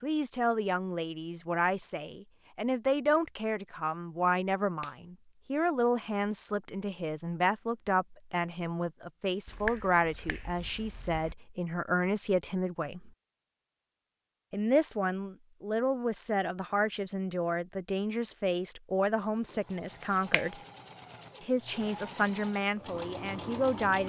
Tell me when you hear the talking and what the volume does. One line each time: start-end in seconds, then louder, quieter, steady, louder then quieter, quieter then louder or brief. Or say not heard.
0.0-13.1 steady
14.5-20.6 steady
21.4-24.0 brief.